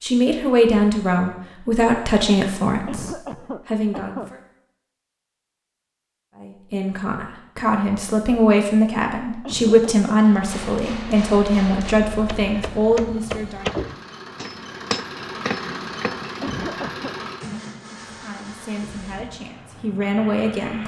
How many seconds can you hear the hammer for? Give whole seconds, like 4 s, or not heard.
6 s.